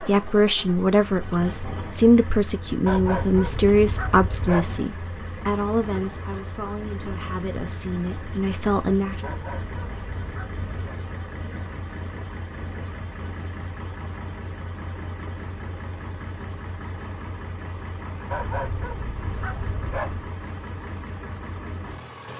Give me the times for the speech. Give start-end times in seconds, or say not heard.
0.0-9.3.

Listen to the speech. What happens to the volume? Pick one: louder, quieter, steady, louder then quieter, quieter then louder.
quieter.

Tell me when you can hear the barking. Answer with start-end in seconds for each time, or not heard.
2.9-4.8, 9.2-11.0, 18.3-20.3.